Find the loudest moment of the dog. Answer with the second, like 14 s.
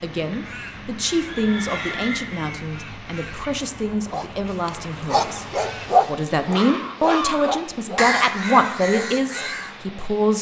6 s.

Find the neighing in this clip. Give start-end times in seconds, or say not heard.
1.2-2.3.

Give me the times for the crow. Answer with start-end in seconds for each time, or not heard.
0.0-9.8.